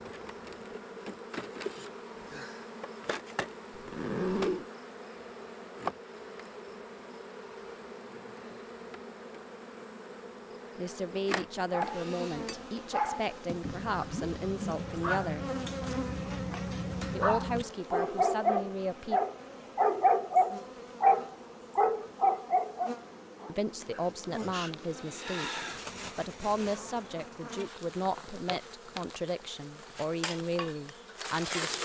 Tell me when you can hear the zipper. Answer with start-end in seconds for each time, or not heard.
3.7-4.7.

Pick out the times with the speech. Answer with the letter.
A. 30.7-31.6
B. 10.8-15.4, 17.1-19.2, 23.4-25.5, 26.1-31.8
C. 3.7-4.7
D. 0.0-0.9
B.